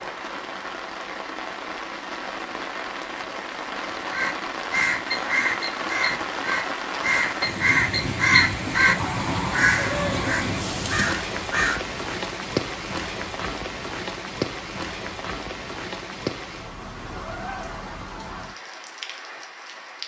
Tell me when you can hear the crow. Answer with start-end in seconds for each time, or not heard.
4.1-11.8.